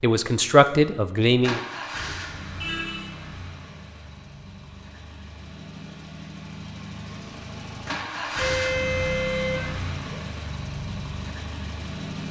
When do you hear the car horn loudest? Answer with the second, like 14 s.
9 s.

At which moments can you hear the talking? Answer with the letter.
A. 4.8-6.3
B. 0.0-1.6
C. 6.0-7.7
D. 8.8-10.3
B.